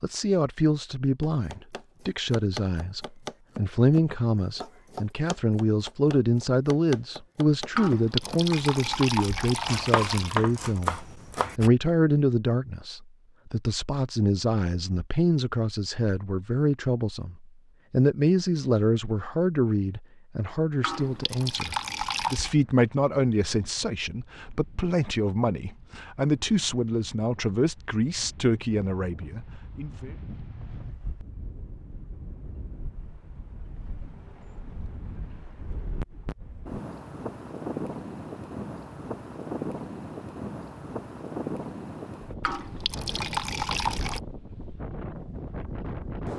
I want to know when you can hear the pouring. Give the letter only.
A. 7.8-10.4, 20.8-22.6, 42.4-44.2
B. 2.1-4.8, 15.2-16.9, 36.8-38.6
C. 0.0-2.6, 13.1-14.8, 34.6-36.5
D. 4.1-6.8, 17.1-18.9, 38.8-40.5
A.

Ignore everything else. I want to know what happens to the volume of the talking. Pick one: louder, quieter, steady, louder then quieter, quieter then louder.
steady.